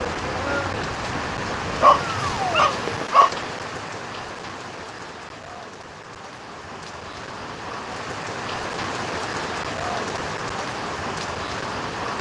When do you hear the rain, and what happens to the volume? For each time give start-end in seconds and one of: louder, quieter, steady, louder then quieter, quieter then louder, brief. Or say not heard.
0.0-12.1 quieter then louder.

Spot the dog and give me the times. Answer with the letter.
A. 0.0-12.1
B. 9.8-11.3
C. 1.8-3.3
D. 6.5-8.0
C.